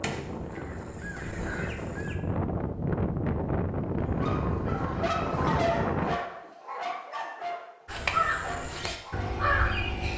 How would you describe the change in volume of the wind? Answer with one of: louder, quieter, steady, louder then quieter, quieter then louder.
louder.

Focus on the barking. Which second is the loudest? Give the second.
6 s.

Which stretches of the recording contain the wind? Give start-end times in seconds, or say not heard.
0.0-6.2.